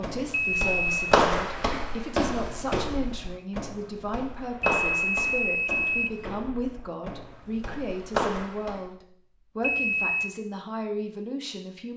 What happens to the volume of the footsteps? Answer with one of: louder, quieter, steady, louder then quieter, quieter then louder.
quieter then louder.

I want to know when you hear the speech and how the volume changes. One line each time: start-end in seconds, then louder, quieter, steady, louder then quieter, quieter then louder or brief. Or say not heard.
0.0-11.9 steady.